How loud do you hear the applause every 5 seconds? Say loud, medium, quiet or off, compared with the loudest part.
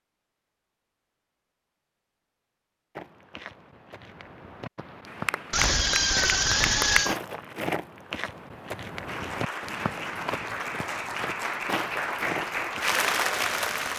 off, loud, loud.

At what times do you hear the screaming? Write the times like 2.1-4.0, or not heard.
5.5-7.2.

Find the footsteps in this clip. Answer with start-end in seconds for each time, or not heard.
3.0-13.9.